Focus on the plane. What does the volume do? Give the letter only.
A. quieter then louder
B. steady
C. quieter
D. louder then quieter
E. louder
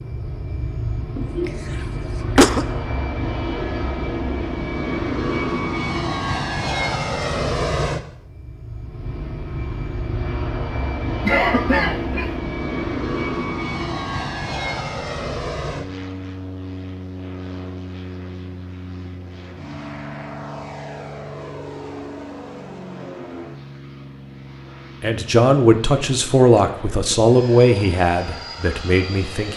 C.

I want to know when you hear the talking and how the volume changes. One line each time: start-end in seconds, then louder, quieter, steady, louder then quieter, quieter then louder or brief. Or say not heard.
25.0-29.5 quieter.